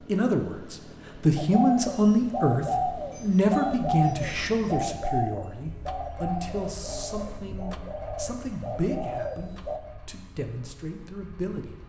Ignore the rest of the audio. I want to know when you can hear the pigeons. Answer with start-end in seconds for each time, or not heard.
1.4-9.8.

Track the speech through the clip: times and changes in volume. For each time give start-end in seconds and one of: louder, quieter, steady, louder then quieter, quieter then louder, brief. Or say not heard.
0.1-11.8 quieter.